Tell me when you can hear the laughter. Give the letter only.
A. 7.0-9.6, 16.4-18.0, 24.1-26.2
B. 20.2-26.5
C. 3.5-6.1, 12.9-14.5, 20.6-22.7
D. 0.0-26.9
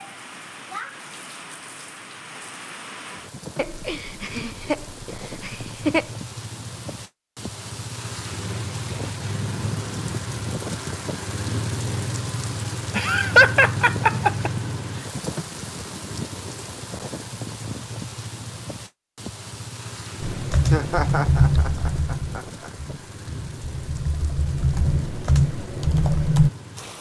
C.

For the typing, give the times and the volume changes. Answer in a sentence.
You can hear the typing from 20.2 to 26.5 s, getting quieter then louder.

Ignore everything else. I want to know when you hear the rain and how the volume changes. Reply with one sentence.
You can hear the rain from 0.0 to 26.9 s, getting louder then quieter.